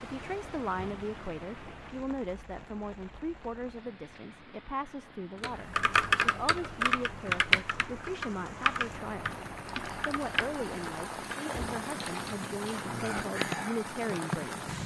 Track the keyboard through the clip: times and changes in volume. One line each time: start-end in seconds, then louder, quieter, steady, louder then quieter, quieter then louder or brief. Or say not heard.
5.4-14.5 quieter then louder.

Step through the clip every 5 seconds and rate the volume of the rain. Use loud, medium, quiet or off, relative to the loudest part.
medium, medium, loud.